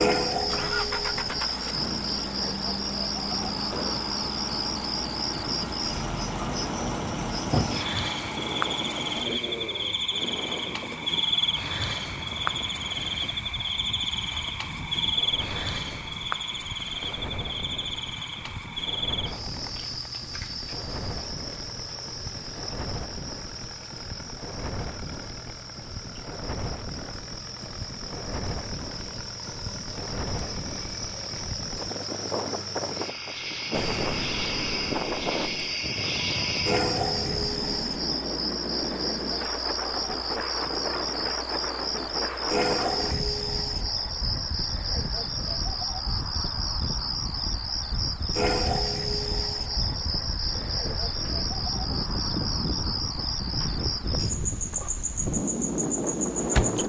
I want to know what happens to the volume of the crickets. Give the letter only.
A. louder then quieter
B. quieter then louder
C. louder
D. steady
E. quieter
B.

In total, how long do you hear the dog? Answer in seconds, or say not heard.
not heard.